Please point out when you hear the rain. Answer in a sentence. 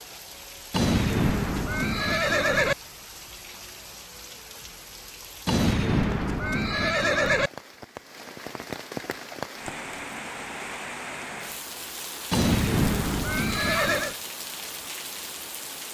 The rain can be heard from 0.0 to 15.8 s.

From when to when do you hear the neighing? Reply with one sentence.
The neighing can be heard from 0.7 to 2.8 s, from 5.5 to 7.5 s and from 12.3 to 14.2 s.